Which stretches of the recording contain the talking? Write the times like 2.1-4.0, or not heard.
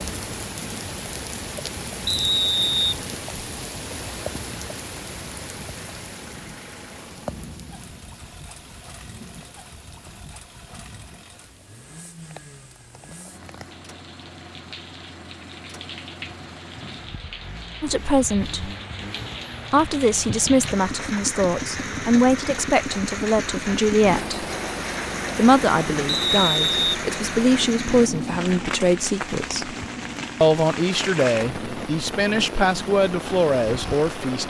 17.8-18.7, 19.7-24.4, 25.4-29.8, 30.4-34.4.